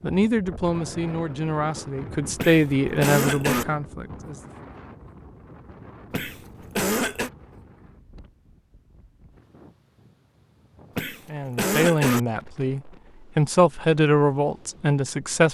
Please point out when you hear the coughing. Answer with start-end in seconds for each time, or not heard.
2.4-3.6, 6.1-7.3, 10.9-12.2.